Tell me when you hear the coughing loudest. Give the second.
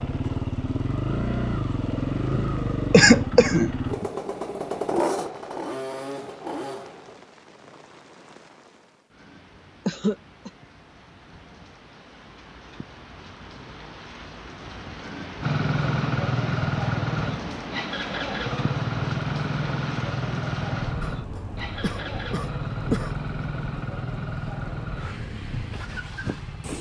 3 s.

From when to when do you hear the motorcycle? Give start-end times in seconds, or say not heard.
0.0-7.2, 15.4-26.7.